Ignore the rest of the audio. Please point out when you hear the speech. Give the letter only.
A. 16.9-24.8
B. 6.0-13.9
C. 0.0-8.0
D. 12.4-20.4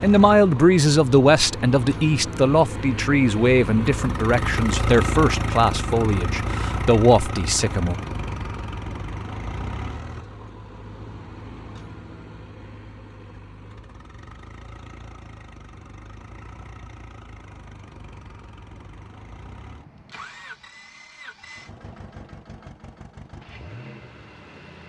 C.